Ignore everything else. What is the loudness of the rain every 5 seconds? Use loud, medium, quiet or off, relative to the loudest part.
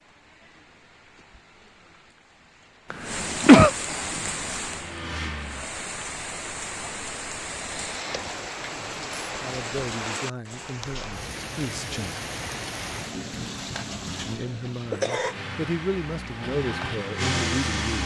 loud, loud, loud, medium.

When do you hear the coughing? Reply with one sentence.
The coughing can be heard from 2.9 to 3.7 s, from 7.6 to 8.3 s and from 13.7 to 15.3 s.